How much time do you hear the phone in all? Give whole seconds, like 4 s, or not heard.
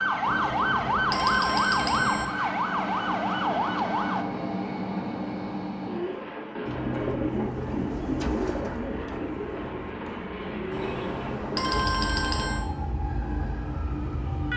4 s.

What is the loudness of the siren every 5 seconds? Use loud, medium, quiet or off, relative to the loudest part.
loud, off, medium.